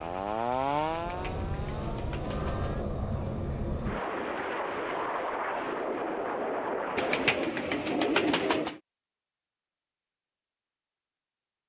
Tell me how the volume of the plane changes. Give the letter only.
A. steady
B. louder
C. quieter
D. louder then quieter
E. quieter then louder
B.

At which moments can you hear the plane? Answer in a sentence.
You can hear the plane from 0.1 to 7.3 s.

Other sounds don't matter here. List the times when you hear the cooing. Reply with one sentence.
The cooing can be heard from 0.9 to 2.7 s and from 7.0 to 8.8 s.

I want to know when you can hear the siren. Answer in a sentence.
You can hear the siren from 0.0 to 2.9 s.